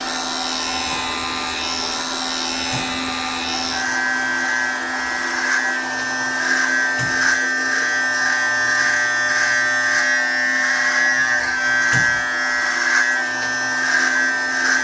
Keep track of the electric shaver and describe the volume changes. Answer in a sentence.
The loudness of the electric shaver goes up.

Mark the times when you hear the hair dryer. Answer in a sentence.
The hair dryer can be heard from 0.0 to 14.7 s.